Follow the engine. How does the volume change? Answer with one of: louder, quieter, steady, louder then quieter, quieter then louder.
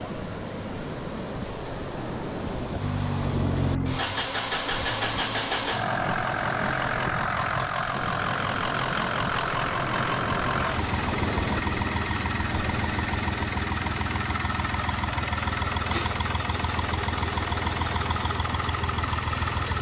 steady.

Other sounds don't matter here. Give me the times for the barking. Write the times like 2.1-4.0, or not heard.
not heard.